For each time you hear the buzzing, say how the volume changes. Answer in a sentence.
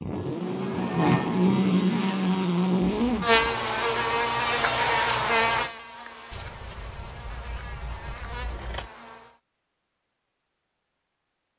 The buzzing can be heard from 0.0 to 9.4 s, getting quieter.